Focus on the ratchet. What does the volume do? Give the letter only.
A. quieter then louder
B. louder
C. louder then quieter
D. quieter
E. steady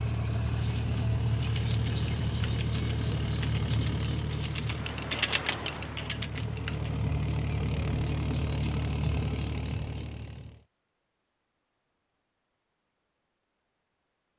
C.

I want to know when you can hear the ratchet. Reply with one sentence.
The ratchet can be heard from 1.2 to 7.0 s.